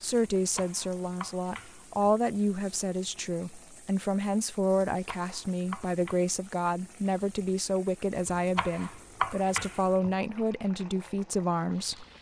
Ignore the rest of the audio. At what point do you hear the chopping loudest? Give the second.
9 s.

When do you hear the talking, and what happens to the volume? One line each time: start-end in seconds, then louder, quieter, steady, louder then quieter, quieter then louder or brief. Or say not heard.
0.0-12.1 steady.